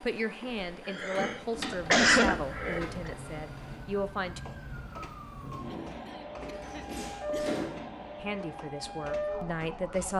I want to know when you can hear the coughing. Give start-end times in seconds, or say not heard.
0.4-3.1, 5.7-7.6.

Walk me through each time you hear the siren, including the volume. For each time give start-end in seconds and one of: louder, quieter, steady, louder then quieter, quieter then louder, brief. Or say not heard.
1.5-10.1 louder.